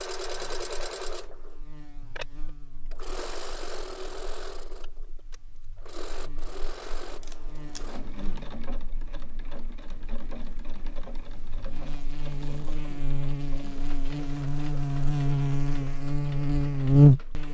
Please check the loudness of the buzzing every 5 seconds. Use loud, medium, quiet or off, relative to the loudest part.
quiet, quiet, quiet, loud.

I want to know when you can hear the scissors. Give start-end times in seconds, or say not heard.
6.8-8.0.